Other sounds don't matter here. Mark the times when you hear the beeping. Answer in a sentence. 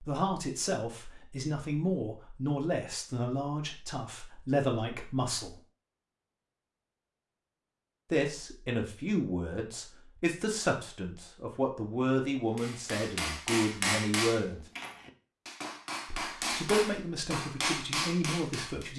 You can't hear the beeping here.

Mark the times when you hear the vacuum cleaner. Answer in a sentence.
The vacuum cleaner can't be heard in this clip.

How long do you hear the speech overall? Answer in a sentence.
The speech can be heard for 15 seconds in total.